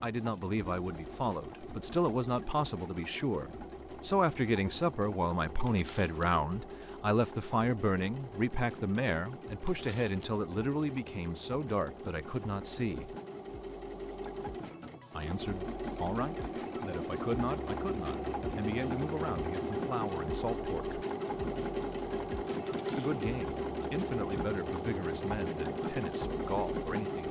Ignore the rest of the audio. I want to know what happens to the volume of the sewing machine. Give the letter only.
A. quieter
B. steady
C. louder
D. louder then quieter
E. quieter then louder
C.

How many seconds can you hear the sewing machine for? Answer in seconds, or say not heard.
27 s.